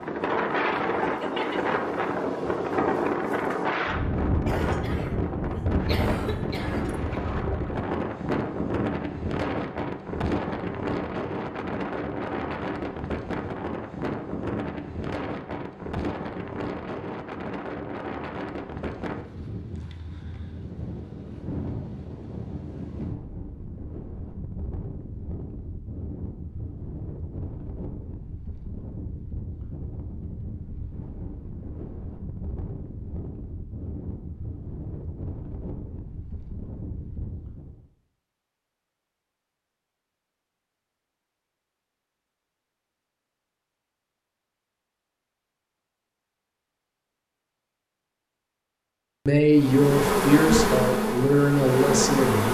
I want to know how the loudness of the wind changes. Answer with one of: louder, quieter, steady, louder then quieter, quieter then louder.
quieter.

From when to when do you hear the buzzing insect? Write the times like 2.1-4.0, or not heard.
49.5-52.4.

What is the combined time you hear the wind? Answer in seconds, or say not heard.
38 s.